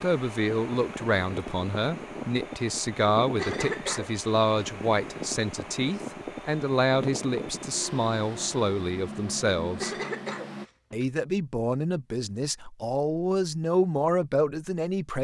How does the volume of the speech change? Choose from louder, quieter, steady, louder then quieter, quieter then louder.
steady.